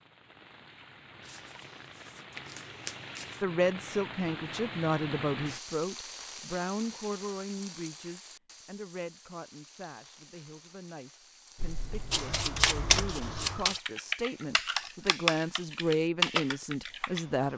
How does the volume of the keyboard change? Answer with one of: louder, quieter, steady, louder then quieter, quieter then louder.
louder.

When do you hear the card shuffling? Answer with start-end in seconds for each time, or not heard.
1.2-3.5, 12.1-13.8.